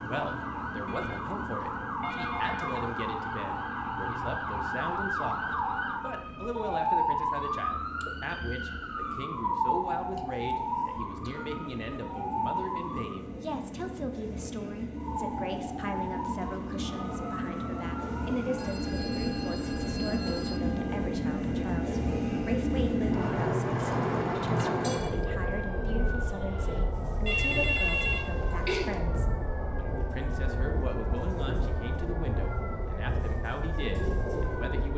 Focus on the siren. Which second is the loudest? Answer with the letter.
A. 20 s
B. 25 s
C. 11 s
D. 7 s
D.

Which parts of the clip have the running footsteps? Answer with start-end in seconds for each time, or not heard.
not heard.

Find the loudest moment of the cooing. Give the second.
25 s.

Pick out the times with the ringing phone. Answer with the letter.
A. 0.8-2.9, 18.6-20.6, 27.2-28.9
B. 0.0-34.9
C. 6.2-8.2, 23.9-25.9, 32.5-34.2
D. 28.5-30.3
A.